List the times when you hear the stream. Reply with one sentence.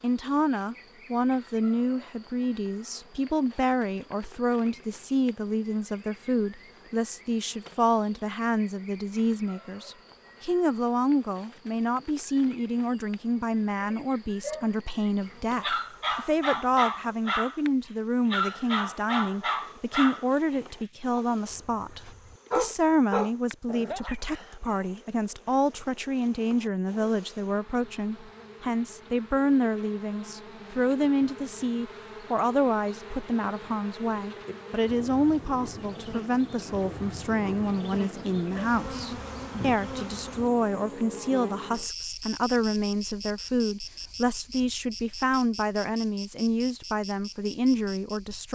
The stream can't be heard in this clip.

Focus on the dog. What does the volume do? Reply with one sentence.
The loudness of the dog goes down, then up.